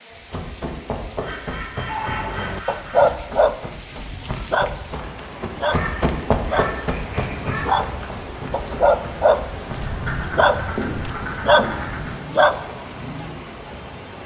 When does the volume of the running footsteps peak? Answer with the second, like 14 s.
6 s.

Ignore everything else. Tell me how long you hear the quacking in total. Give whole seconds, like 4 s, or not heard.
6 s.